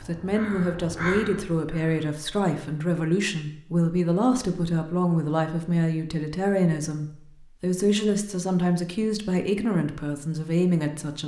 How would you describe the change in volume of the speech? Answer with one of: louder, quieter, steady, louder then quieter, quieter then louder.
steady.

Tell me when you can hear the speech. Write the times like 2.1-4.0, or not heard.
0.0-11.2.